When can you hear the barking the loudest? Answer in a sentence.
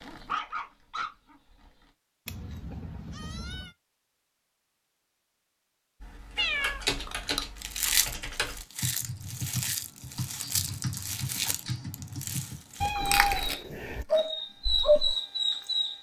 The loudest moment of the barking is at 15 seconds.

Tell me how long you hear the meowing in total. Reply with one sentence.
The meowing can be heard for 3 seconds in total.